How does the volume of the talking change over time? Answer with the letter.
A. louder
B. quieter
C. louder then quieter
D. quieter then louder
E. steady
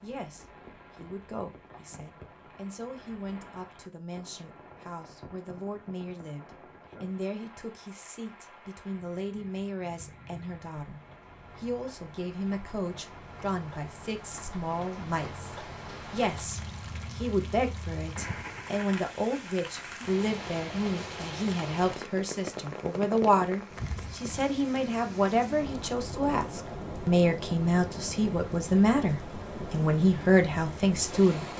A.